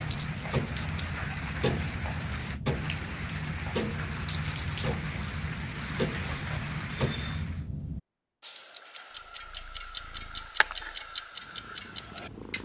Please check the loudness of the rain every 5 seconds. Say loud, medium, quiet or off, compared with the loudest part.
loud, loud, off.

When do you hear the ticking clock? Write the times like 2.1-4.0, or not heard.
0.0-12.5.